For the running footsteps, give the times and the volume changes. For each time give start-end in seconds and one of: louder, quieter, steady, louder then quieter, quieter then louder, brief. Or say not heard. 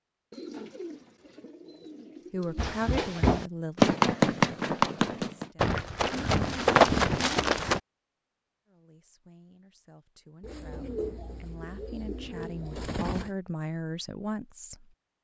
2.5-7.8 quieter then louder.